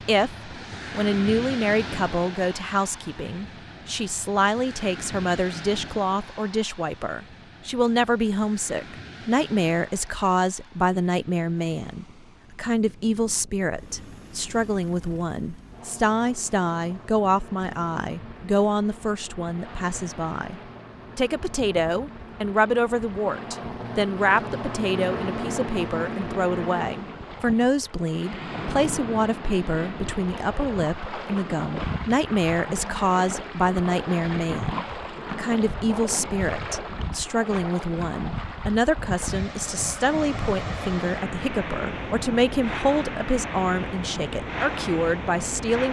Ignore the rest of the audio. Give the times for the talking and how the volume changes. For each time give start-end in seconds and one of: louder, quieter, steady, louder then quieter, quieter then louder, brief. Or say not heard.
0.1-45.8 steady.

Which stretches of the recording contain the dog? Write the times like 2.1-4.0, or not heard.
not heard.